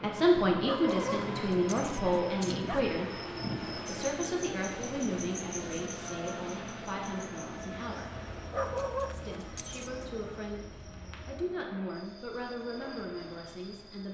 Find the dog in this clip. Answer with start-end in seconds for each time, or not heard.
0.6-2.9, 8.5-10.1.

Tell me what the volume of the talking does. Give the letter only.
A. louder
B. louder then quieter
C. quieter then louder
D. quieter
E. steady
D.